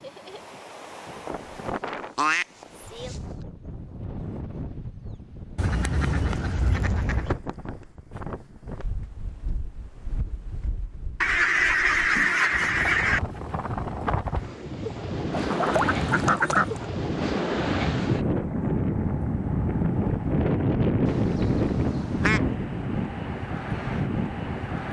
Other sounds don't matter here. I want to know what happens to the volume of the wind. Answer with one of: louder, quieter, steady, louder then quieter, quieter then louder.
louder.